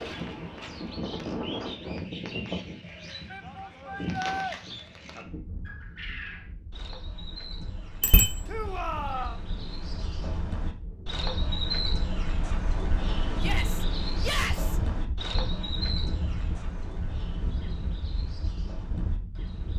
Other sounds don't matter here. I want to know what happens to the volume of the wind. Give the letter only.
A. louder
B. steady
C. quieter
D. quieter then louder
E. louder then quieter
D.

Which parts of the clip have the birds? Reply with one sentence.
The birds can be heard from 0.0 to 19.7 s.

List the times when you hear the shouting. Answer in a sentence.
You can hear the shouting from 3.3 to 4.5 s, from 8.4 to 9.4 s and from 13.3 to 14.8 s.